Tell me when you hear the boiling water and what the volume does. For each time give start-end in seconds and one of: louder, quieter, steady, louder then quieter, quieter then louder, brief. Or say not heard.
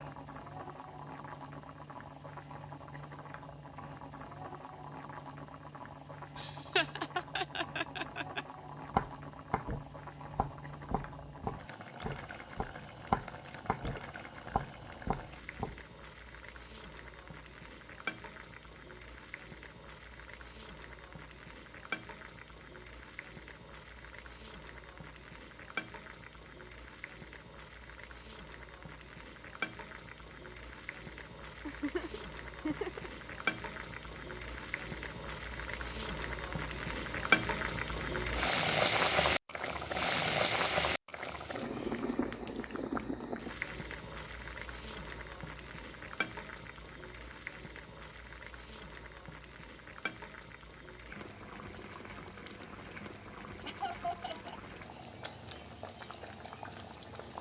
0.0-57.3 louder then quieter.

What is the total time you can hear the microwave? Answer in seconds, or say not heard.
not heard.